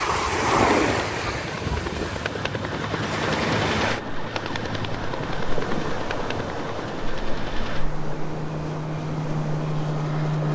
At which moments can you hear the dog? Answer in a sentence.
You can't hear the dog here.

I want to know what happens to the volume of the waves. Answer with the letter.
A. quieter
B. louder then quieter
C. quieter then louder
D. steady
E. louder
A.